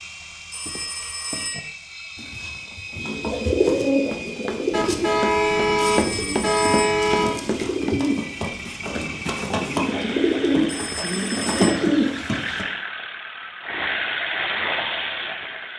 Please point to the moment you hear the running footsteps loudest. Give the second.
6 s.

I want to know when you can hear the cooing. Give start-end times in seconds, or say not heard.
2.1-12.7.